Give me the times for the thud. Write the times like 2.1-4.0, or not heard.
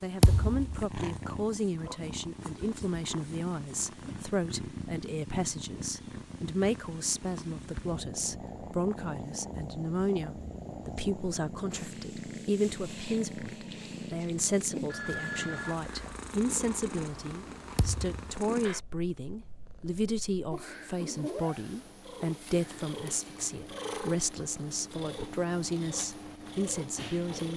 0.2-0.8, 17.8-18.3.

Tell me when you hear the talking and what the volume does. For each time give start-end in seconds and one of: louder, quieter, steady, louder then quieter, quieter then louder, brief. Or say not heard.
0.0-27.5 steady.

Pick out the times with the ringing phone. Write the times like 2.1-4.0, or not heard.
14.9-15.8.